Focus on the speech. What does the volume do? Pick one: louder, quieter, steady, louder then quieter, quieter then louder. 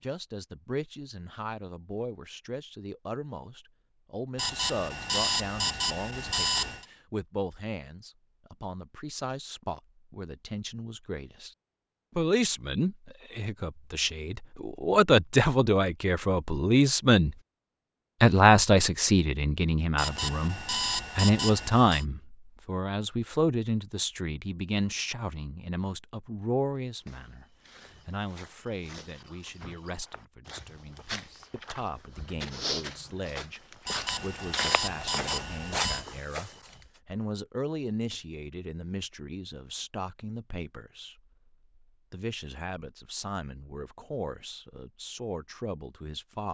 louder then quieter.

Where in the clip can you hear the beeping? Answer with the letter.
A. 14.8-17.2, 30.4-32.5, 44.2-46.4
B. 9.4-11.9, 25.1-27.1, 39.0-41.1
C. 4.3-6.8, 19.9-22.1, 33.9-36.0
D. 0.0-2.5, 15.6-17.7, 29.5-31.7
C.